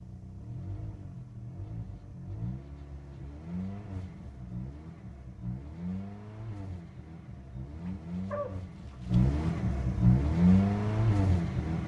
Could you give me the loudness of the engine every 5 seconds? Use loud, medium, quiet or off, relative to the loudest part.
quiet, medium, loud.